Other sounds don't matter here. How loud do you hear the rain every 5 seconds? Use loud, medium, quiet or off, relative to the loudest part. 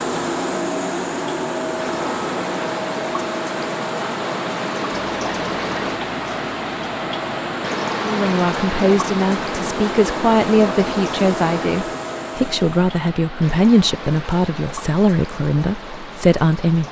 loud, loud, medium, medium.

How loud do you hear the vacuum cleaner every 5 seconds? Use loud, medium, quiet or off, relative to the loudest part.
loud, medium, loud, off.